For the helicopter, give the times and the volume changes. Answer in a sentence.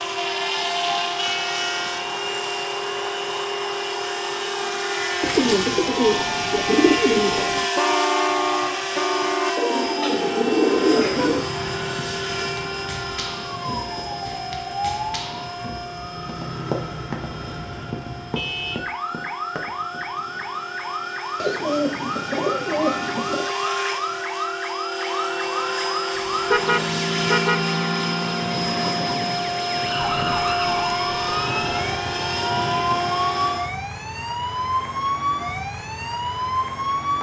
You can hear the helicopter from 0.0 to 33.8 s, getting quieter then louder.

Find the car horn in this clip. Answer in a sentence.
You can hear the car horn from 7.8 to 9.5 s, from 18.4 to 18.9 s and from 26.5 to 27.6 s.